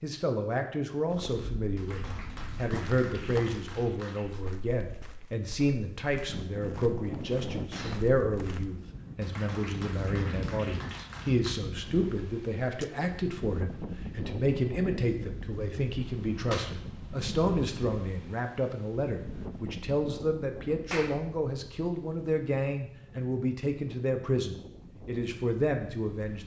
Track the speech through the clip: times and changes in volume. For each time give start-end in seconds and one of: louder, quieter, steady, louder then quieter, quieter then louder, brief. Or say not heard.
0.0-26.4 steady.